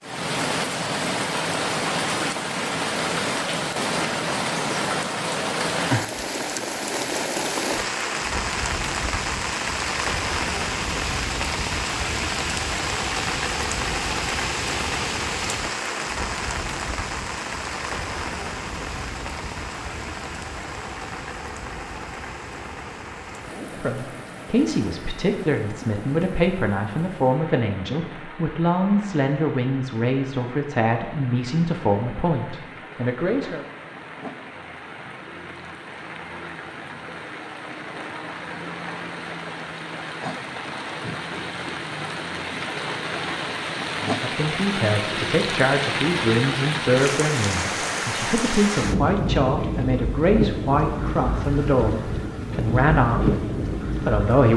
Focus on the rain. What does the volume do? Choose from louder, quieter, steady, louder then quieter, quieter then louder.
quieter then louder.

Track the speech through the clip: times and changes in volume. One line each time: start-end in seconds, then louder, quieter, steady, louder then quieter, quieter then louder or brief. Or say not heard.
23.6-33.6 steady
44.0-54.5 steady.